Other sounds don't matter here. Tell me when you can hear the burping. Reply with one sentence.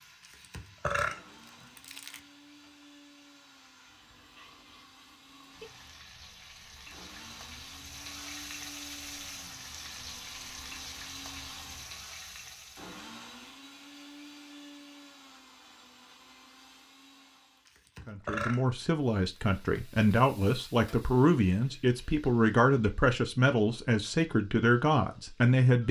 You can hear the burping from 0.2 to 2.2 s and from 17.6 to 18.6 s.